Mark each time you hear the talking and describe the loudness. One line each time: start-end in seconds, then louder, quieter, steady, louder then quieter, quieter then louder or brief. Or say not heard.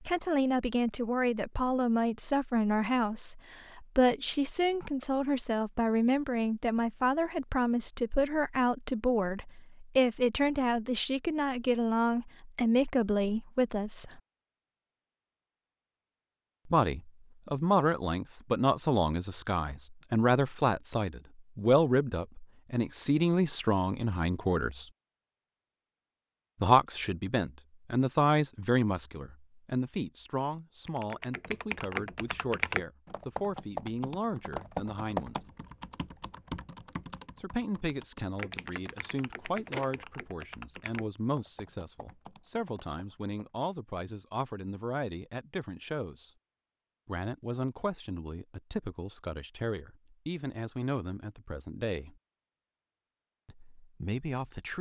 0.0-14.2 steady
16.6-24.9 steady
26.6-35.4 quieter
37.4-46.3 steady
47.0-52.1 steady
53.5-54.7 brief.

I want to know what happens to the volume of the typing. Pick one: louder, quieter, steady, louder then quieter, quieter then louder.
quieter.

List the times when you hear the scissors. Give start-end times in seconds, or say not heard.
38.5-40.0.